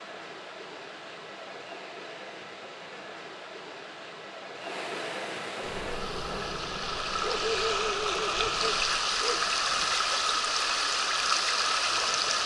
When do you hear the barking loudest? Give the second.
8 s.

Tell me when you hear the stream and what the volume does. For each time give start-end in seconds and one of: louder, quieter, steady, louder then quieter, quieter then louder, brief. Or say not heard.
0.0-12.4 louder.